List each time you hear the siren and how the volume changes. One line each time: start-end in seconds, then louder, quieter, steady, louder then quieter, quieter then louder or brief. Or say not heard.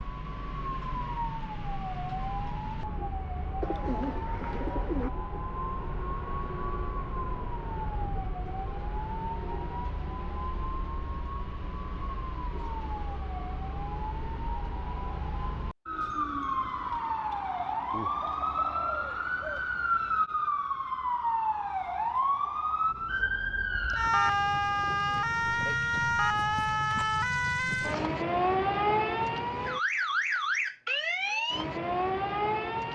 0.0-32.9 louder.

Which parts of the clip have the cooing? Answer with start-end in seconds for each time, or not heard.
3.6-5.1, 17.9-19.7, 24.1-25.6.